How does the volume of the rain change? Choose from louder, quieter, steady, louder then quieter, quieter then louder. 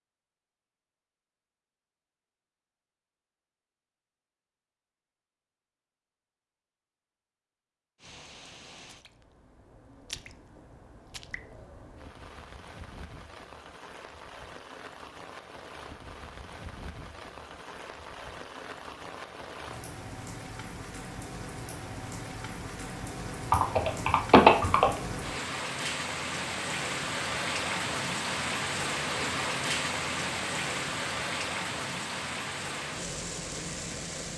louder.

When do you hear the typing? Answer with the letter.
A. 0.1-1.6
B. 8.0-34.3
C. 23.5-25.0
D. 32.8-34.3
C.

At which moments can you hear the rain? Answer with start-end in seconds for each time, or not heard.
8.0-34.3.